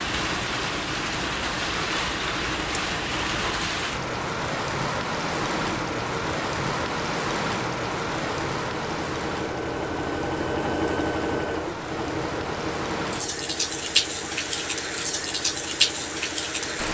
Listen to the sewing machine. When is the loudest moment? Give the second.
11 s.